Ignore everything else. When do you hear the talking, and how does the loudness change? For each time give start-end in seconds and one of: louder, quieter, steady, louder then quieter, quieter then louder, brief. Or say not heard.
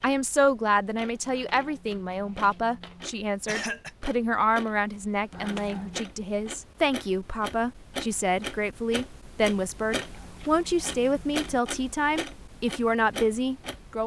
0.0-14.0 steady.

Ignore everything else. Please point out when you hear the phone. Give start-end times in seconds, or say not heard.
not heard.